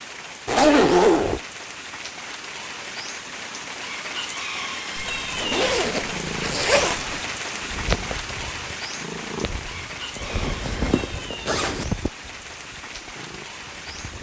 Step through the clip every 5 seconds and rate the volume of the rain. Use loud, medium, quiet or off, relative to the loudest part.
loud, loud, medium.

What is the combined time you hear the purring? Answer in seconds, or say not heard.
8 s.